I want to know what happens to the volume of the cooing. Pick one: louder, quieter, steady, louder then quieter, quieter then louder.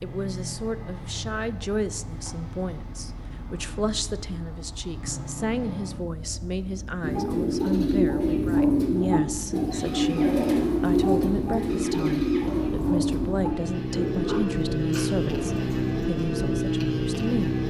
quieter.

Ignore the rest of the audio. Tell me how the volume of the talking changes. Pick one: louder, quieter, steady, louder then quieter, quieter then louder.
steady.